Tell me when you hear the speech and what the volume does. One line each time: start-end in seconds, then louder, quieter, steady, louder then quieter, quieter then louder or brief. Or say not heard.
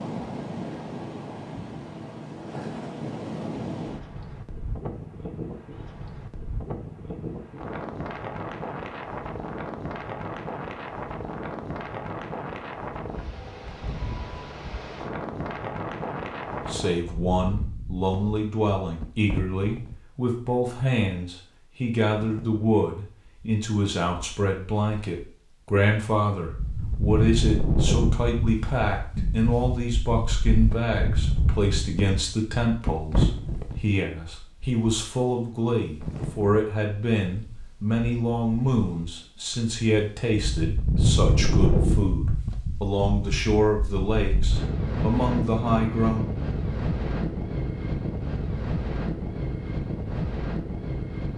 16.6-46.3 steady.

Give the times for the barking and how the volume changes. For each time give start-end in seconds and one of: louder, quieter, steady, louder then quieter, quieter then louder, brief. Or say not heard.
not heard.